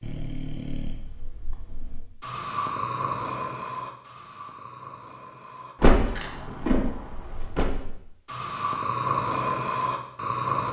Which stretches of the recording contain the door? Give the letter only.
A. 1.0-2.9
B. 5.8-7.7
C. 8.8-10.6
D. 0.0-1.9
B.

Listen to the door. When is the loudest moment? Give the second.
6 s.